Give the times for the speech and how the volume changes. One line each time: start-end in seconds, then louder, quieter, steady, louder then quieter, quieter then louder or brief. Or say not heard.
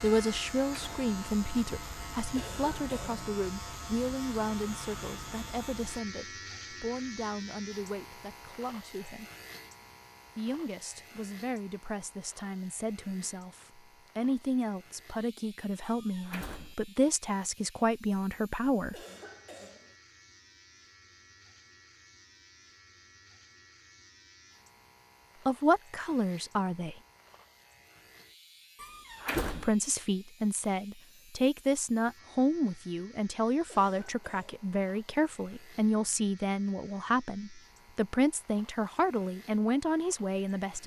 0.0-9.3 quieter
10.3-19.0 louder
25.4-26.9 brief
29.3-40.8 steady.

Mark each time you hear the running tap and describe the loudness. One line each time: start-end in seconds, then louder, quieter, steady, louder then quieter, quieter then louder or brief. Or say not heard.
not heard.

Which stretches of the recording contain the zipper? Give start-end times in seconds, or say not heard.
not heard.